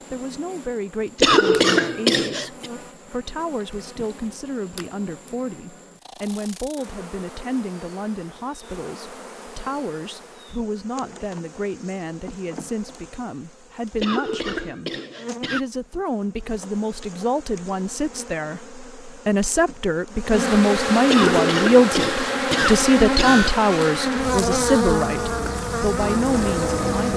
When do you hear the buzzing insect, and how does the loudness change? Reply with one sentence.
The buzzing insect can be heard from 0.0 to 27.1 s, getting louder.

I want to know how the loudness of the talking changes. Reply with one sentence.
The loudness of the talking goes up.